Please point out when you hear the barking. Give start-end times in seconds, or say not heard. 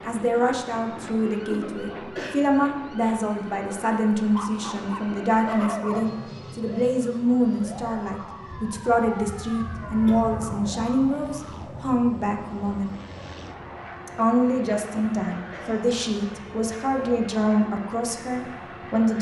4.2-6.0.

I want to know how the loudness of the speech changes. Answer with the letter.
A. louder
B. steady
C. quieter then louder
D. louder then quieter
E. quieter
B.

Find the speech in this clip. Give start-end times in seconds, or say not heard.
0.1-12.9, 14.1-19.1.